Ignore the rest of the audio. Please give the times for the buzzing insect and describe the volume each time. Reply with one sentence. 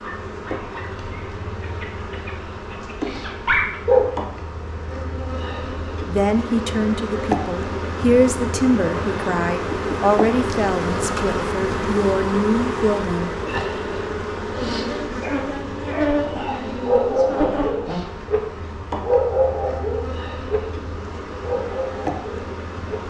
The buzzing insect can be heard from 0.0 to 23.0 s, getting louder then quieter.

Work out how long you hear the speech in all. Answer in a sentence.
You can hear the speech for 7 seconds altogether.